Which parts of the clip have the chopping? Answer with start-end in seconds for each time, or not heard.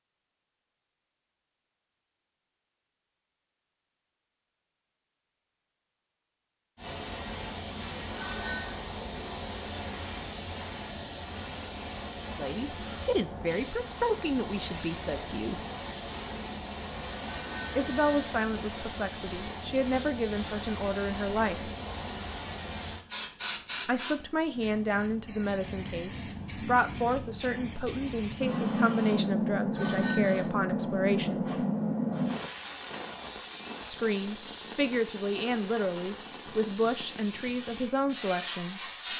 not heard.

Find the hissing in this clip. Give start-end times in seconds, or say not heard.
6.8-39.1.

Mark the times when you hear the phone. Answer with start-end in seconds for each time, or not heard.
8.2-8.8, 17.2-18.1, 29.8-30.5.